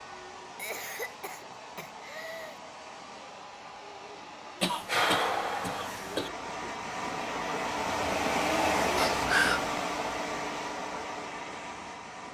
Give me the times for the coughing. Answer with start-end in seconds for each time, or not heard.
0.6-2.5, 4.6-6.3, 8.9-9.7.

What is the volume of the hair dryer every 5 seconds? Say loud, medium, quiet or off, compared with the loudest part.
quiet, loud, medium.